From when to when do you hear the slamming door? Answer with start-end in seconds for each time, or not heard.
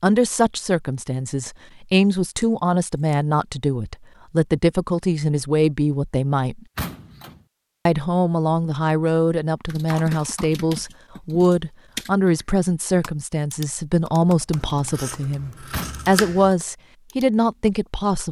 6.8-7.4, 15.7-16.2.